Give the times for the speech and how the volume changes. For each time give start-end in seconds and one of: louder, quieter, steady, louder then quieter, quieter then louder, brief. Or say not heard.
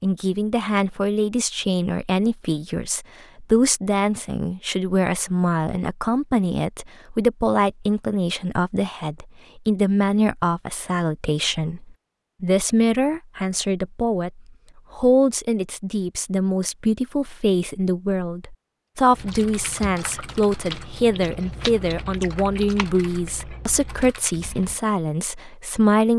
0.0-26.1 steady.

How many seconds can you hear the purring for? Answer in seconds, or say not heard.
not heard.